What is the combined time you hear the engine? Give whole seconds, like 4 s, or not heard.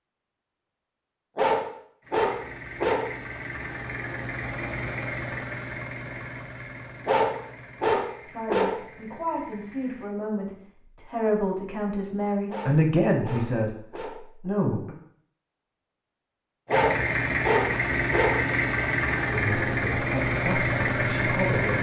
13 s.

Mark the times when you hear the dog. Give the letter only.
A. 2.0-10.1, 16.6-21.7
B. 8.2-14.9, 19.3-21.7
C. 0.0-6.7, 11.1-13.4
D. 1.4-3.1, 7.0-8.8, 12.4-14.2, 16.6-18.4
D.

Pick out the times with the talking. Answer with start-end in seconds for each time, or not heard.
8.2-14.9, 19.3-21.7.